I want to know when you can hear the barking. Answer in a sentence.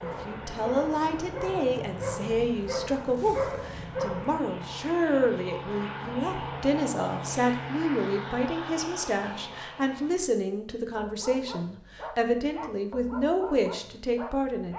You can hear the barking from 0.0 to 4.4 s and from 10.9 to 14.7 s.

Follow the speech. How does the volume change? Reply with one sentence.
The volume of the speech stays about the same.